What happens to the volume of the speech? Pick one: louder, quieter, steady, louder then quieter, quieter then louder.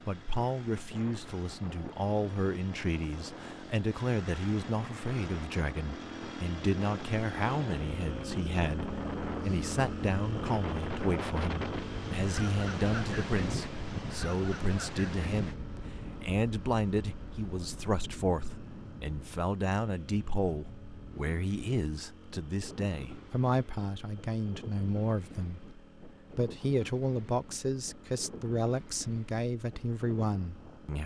steady.